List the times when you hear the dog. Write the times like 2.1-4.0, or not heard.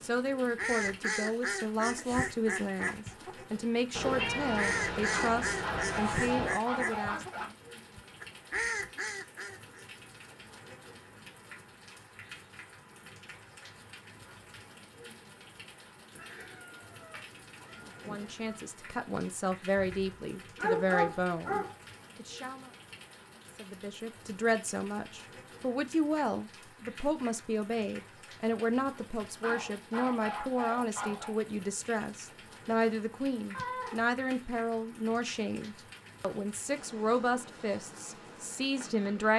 5.1-7.5, 19.8-21.8, 29.4-31.4.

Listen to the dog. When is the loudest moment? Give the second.
21 s.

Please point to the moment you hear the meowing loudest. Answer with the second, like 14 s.
4 s.